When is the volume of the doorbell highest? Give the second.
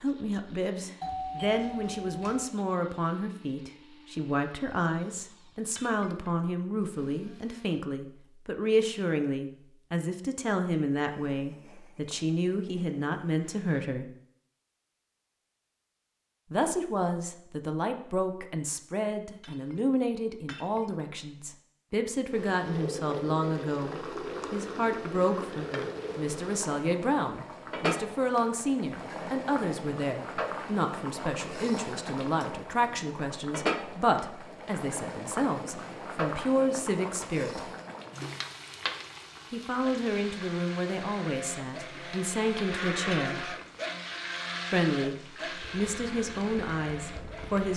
1 s.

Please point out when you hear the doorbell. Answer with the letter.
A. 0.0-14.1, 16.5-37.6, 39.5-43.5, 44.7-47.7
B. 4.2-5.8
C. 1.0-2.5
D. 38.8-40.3
C.